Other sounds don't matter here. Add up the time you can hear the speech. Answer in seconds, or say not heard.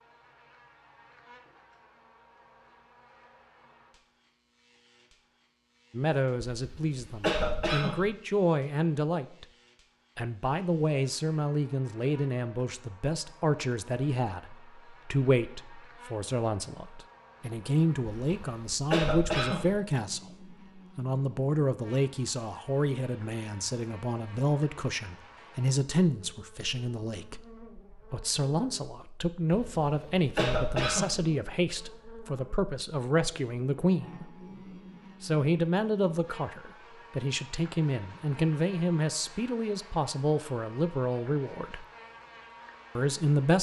34 s.